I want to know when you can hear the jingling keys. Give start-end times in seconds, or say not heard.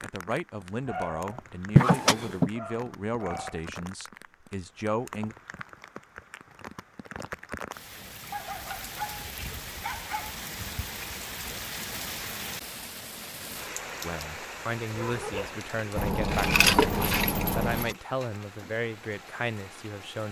1.8-2.5, 8.2-9.9, 15.9-17.9.